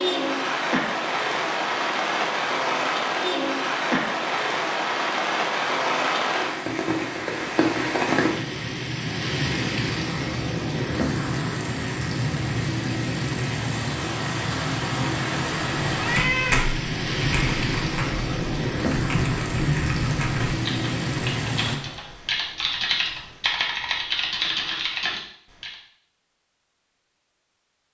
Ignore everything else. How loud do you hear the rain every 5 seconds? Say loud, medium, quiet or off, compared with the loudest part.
loud, loud, loud, loud, loud, off.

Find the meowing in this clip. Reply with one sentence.
The meowing can be heard from 15.9 to 16.7 s.